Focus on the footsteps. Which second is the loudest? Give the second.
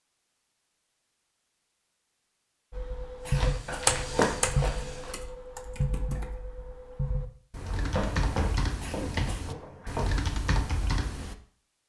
4 s.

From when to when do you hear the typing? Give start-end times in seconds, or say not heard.
2.7-11.3.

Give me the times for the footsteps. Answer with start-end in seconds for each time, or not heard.
3.2-5.2, 7.5-10.2.